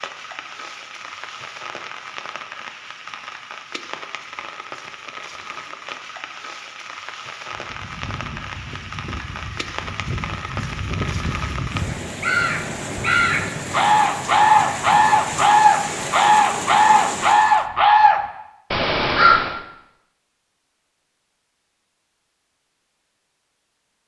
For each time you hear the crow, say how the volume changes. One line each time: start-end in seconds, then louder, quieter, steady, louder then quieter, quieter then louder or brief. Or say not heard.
7.5-19.6 louder.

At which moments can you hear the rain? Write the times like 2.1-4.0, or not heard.
0.0-17.6.